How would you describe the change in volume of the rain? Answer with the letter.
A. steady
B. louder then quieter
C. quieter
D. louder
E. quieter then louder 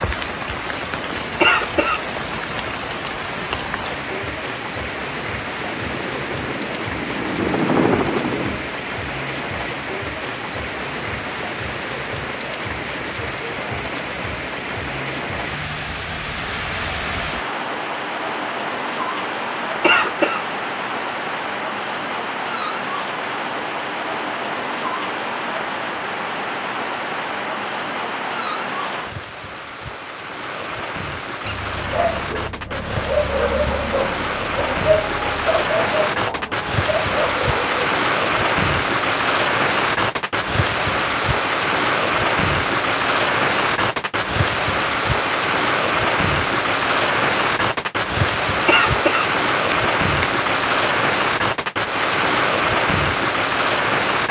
D.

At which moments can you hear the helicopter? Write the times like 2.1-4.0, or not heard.
5.5-8.8.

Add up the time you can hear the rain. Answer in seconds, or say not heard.
54 s.